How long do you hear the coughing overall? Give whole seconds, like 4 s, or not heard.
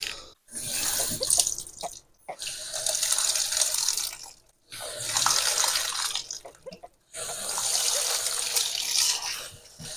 3 s.